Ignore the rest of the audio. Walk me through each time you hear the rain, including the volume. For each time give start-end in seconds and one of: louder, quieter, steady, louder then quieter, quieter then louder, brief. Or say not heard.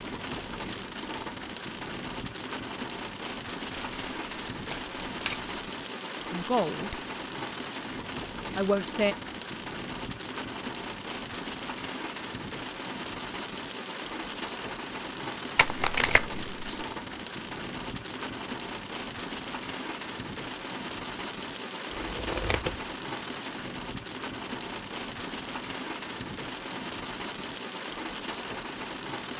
0.0-29.3 steady.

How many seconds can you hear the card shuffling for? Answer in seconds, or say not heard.
4 s.